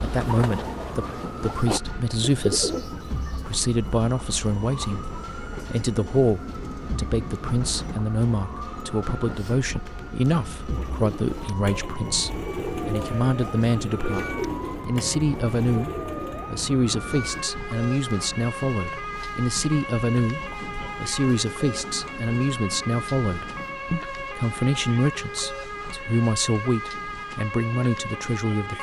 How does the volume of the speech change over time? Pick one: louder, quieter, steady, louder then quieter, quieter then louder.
steady.